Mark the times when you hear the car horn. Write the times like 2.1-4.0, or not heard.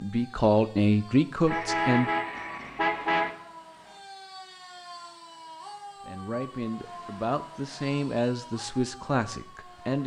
1.4-3.3.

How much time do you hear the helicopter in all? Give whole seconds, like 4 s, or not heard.
not heard.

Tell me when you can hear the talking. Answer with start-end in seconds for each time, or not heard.
0.0-2.1, 6.0-10.0.